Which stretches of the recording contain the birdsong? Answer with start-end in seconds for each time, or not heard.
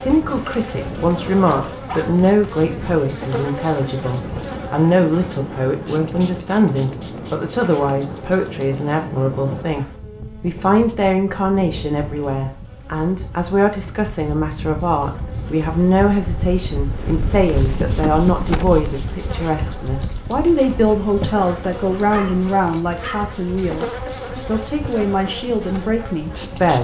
not heard.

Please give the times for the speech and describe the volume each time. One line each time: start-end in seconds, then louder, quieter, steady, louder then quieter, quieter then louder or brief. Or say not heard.
0.0-26.7 steady.